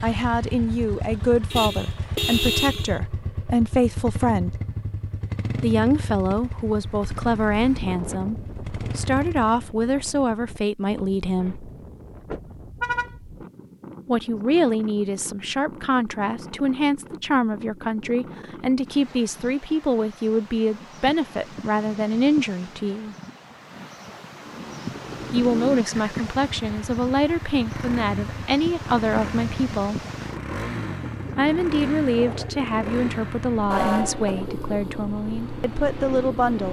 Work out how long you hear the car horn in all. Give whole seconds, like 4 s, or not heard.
3 s.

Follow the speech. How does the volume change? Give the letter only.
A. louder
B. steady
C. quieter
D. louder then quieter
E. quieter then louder
B.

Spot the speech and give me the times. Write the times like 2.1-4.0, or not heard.
0.0-4.5, 5.6-11.7, 14.1-23.1, 25.3-30.0, 31.4-36.6.